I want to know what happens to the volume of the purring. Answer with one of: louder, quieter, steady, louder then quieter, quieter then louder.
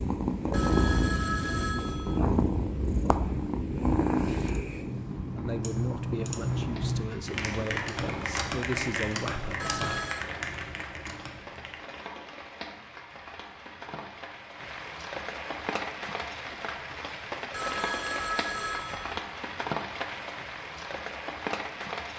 quieter.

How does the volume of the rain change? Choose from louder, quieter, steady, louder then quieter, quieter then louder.
louder.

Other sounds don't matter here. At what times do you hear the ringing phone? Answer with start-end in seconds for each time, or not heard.
0.5-2.2, 9.6-10.3, 17.5-19.2.